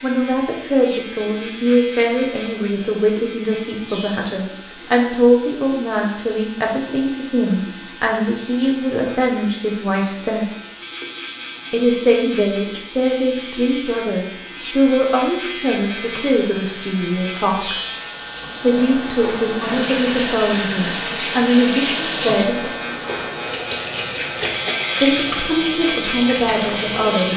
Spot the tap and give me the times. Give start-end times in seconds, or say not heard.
0.0-27.3.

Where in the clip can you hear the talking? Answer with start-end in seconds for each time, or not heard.
0.0-10.4, 11.7-17.8, 18.6-22.7, 25.0-27.3.